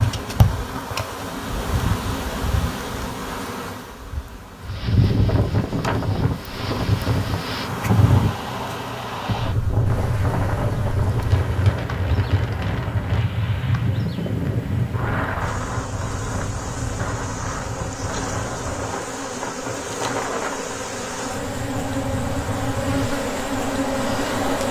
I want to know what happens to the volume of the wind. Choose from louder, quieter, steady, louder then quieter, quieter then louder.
quieter.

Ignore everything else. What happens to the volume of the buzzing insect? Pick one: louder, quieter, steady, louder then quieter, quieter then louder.
quieter then louder.